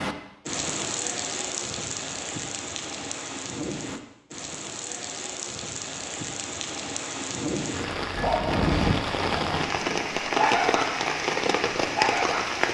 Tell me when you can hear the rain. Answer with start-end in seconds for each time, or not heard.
0.0-12.6.